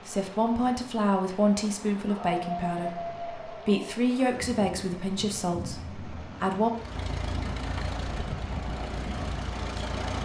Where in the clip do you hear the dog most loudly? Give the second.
3 s.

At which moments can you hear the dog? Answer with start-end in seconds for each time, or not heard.
2.0-4.0.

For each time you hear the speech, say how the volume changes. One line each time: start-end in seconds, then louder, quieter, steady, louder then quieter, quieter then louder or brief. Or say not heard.
0.1-6.7 quieter.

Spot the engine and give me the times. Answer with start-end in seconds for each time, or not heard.
6.8-10.2.